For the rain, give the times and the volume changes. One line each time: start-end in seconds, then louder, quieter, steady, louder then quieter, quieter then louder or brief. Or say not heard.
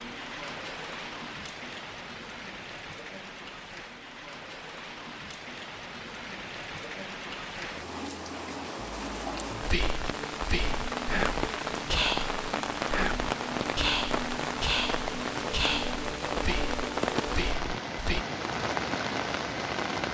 0.0-20.0 louder.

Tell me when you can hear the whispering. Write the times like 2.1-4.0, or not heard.
9.6-18.2.